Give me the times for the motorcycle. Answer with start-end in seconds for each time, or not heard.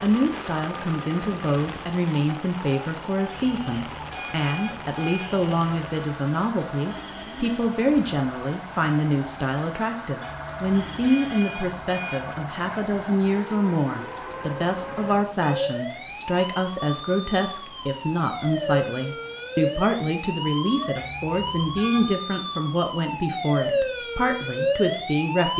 not heard.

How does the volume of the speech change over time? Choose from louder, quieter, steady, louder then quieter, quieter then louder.
steady.